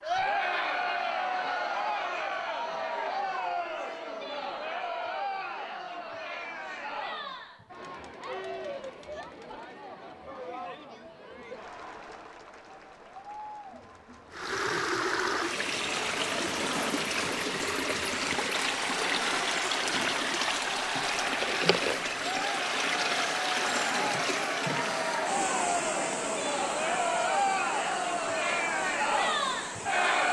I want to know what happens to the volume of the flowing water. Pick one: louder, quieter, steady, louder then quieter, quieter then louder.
quieter.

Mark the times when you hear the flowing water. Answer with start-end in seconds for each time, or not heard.
14.3-30.2.